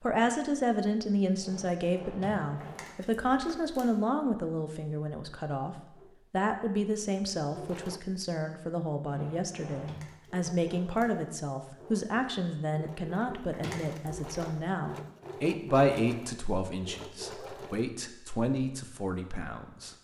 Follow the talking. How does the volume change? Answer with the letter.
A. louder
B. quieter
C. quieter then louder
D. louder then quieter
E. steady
E.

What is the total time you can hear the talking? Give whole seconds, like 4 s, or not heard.
20 s.